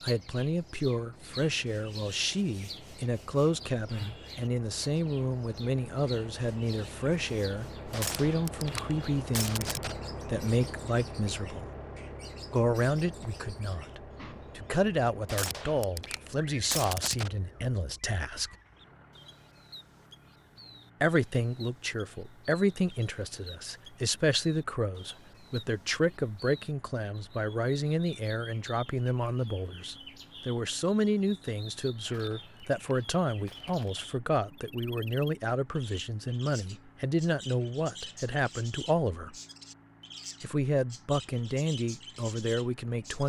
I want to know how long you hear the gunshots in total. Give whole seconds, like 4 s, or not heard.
6 s.